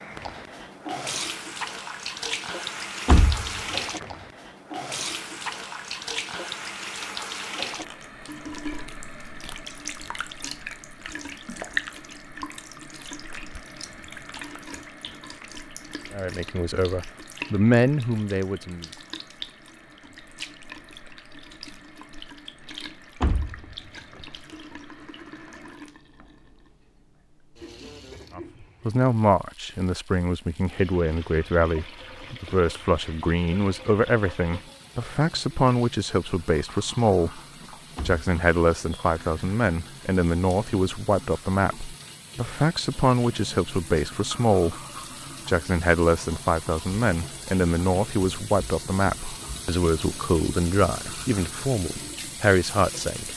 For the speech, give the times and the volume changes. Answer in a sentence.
The speech can be heard briefly from 16.1 to 18.9 s; from 28.4 to 37.4 s, at a steady volume; from 38.0 to 44.8 s, at a steady volume; and from 45.5 to 53.3 s, at a steady volume.